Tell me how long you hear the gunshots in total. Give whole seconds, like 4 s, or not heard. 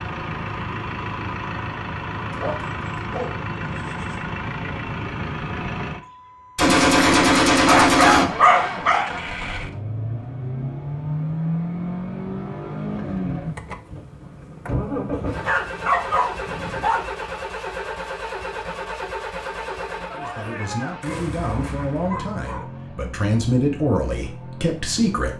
4 s.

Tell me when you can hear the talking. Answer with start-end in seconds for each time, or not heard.
20.1-25.3.